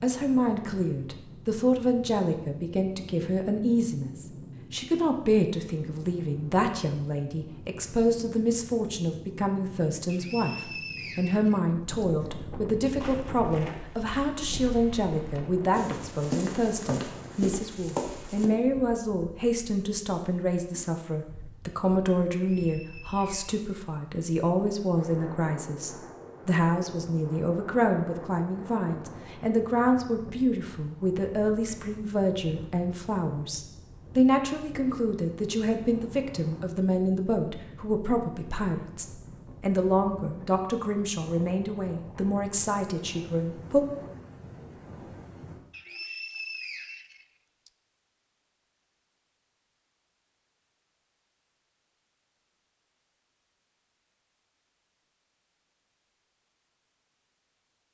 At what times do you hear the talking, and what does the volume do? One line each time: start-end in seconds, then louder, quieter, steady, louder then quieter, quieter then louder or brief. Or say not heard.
0.0-43.9 steady.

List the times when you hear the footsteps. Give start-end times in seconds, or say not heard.
12.8-18.5.